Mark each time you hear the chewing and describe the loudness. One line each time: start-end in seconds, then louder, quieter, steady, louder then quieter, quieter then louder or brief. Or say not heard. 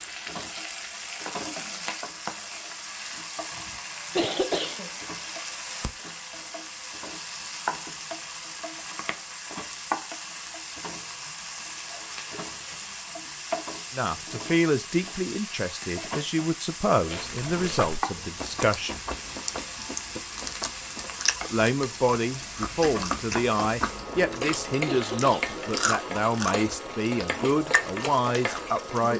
17.1-28.8 steady.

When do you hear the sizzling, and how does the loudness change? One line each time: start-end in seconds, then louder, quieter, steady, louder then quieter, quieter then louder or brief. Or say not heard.
0.0-29.1 steady.